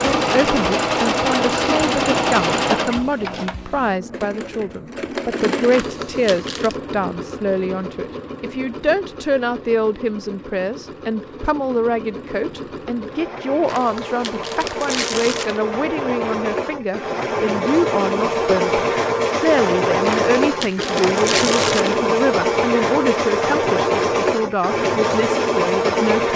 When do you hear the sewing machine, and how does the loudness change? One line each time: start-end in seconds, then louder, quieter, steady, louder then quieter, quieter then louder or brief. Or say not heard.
0.0-26.3 quieter then louder.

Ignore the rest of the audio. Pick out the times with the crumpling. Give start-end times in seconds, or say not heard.
5.7-6.8, 13.7-15.6, 20.0-21.9.